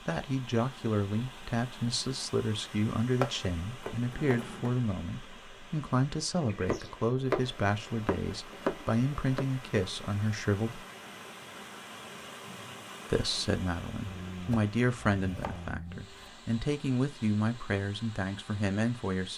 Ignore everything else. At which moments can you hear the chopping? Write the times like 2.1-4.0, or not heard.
3.2-4.5, 6.5-9.4, 14.5-16.3.